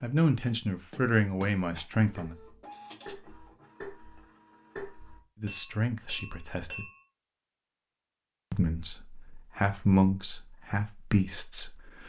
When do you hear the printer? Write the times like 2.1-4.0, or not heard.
2.1-5.2.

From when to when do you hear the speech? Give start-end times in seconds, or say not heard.
0.0-2.4, 5.4-6.8, 8.5-12.0.